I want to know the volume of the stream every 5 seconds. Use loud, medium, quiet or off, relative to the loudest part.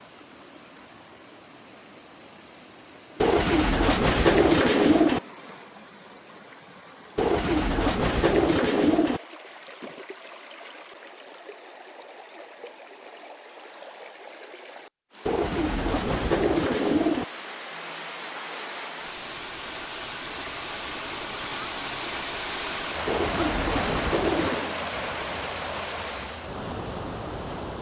quiet, quiet, quiet, medium, loud, loud.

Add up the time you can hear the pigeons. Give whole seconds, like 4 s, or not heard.
8 s.